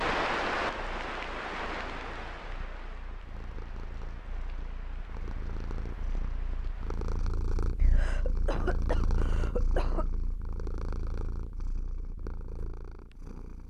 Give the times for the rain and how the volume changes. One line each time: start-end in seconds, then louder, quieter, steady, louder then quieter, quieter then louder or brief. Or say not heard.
0.0-7.2 quieter.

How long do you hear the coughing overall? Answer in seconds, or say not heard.
2 s.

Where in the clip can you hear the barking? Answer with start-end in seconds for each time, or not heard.
not heard.